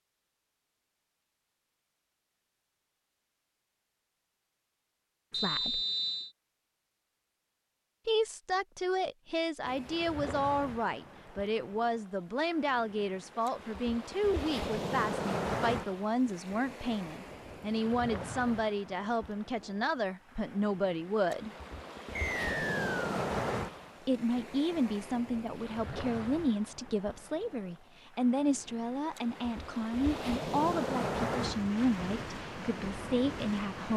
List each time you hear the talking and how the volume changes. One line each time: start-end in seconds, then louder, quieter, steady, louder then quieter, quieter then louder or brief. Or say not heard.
5.3-5.8 brief
8.1-21.5 steady
24.1-33.9 steady.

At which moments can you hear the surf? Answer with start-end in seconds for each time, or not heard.
9.7-33.9.